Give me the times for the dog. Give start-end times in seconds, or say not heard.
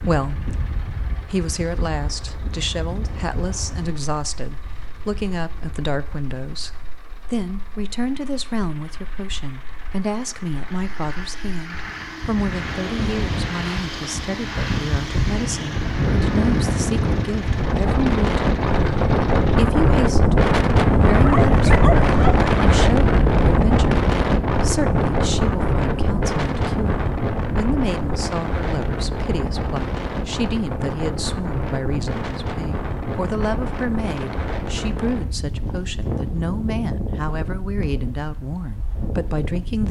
21.1-22.5.